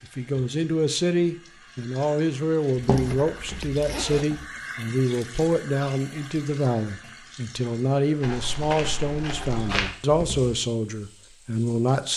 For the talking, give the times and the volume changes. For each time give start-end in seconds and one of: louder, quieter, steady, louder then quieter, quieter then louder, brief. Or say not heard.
0.0-12.1 steady.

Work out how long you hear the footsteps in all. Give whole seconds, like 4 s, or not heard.
4 s.